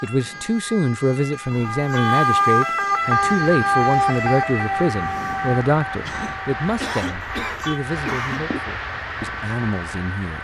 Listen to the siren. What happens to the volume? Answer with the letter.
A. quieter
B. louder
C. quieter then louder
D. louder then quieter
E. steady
D.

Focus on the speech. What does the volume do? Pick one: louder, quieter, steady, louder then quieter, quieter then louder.
quieter.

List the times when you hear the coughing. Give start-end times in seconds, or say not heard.
6.0-8.4.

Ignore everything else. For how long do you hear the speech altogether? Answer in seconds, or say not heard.
10 s.